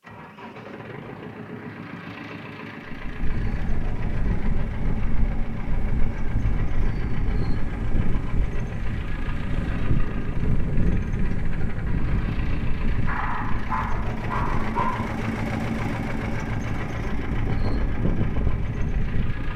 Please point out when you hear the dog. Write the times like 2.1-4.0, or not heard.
13.1-15.1.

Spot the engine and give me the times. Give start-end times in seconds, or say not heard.
0.0-19.5.